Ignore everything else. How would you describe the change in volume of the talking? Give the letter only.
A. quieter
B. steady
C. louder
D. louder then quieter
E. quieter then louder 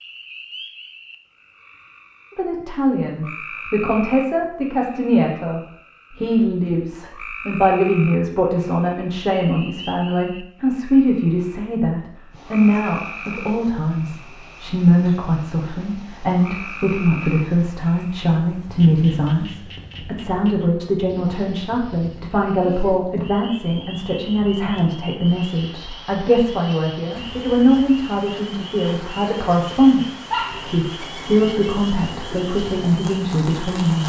B.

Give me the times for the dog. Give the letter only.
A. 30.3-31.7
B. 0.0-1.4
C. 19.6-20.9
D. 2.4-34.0
A.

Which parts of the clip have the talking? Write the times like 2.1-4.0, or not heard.
2.4-34.0.